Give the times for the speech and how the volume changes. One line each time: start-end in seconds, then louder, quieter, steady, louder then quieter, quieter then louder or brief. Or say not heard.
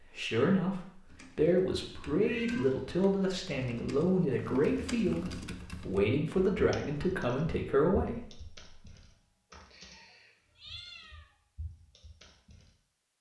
0.0-8.7 steady.